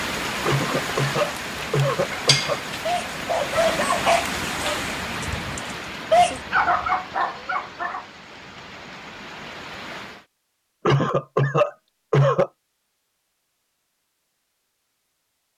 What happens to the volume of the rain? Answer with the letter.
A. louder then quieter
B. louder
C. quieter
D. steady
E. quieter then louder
C.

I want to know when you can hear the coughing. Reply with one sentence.
The coughing can be heard from 0.5 to 2.6 s and from 10.8 to 12.5 s.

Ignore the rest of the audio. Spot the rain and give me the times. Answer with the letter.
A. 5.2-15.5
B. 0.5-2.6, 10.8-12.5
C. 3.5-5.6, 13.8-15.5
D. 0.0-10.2
D.